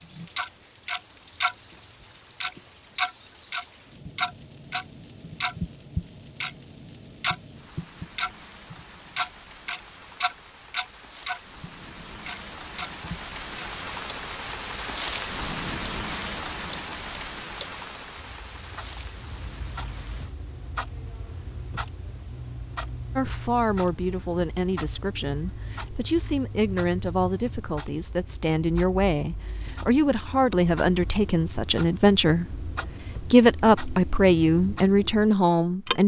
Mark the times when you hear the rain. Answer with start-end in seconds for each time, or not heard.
0.0-20.4.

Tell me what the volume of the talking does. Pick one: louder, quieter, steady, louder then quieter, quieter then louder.
louder.